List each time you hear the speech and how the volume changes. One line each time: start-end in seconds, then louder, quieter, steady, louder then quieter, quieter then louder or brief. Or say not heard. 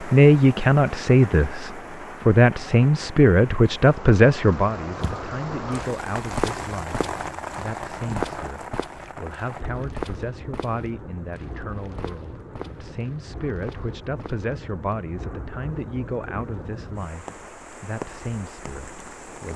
0.0-19.5 quieter.